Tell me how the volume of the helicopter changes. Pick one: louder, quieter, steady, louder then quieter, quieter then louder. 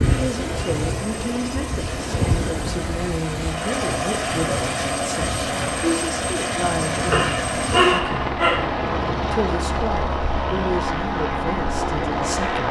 louder.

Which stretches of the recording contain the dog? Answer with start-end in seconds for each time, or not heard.
7.1-8.7.